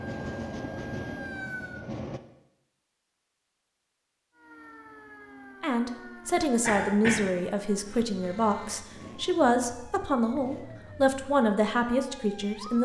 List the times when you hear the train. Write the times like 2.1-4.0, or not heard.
0.0-2.2.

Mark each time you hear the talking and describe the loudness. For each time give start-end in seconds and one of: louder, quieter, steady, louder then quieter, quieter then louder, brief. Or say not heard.
5.6-12.8 steady.